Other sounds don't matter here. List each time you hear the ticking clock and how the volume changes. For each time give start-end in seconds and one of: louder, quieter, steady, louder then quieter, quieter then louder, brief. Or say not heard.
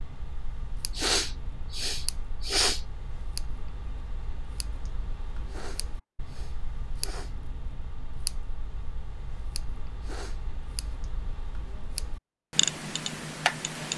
0.0-13.9 louder.